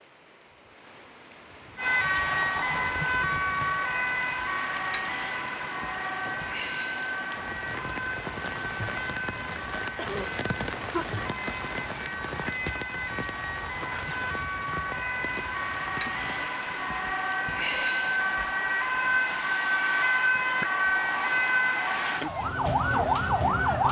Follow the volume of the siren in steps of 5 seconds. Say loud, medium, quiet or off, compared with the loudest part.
loud, medium, medium, loud, loud.